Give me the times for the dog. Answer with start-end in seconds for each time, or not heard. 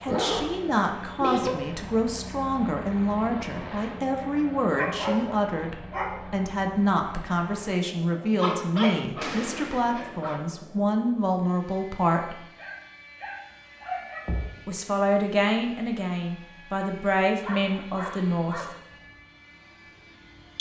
0.1-1.6, 4.8-6.3, 8.4-10.3, 12.6-14.6, 17.4-18.7.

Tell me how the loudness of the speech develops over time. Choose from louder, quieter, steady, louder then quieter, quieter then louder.
steady.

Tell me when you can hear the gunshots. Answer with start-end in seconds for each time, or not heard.
9.2-10.3.